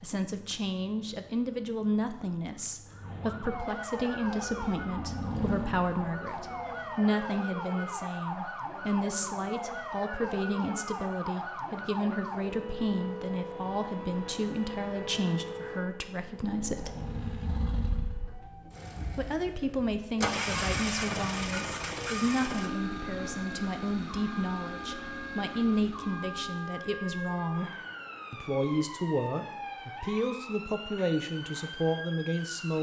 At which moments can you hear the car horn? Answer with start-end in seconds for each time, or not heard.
not heard.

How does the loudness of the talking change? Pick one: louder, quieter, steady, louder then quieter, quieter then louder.
steady.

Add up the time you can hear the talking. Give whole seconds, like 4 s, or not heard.
30 s.